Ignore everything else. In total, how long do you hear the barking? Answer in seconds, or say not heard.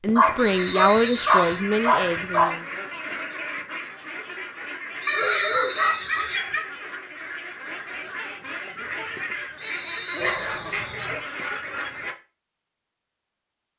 5 s.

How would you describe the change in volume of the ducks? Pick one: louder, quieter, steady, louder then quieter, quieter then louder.
quieter then louder.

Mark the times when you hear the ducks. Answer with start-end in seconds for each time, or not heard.
0.2-12.2.